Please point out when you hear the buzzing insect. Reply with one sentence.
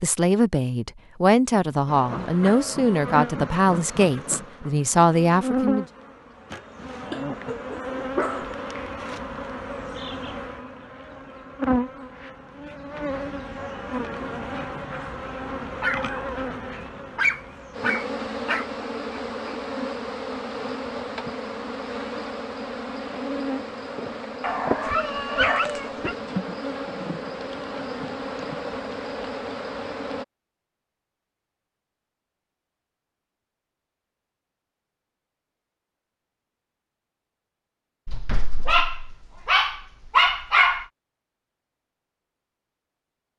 You can hear the buzzing insect from 1.9 to 30.2 s.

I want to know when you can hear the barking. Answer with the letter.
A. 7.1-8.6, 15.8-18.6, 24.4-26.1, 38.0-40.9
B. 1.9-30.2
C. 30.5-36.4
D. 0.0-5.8
A.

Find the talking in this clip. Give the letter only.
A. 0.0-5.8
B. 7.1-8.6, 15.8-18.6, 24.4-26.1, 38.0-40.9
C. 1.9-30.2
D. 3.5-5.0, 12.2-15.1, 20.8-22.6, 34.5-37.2
A.